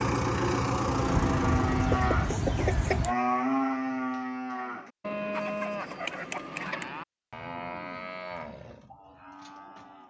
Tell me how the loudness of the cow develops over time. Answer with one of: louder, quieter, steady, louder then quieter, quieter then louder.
quieter.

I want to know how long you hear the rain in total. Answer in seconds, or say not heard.
not heard.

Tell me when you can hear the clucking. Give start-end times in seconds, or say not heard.
1.1-3.1, 5.3-6.9.